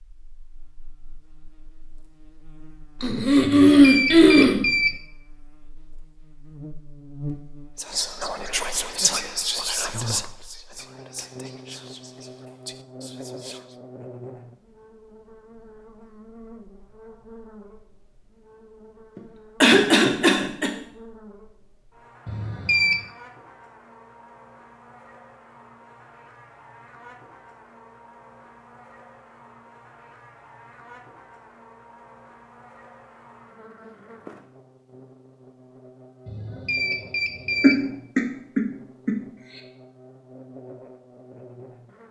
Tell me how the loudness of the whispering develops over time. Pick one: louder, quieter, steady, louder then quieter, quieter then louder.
quieter.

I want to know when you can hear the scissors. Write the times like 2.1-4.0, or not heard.
not heard.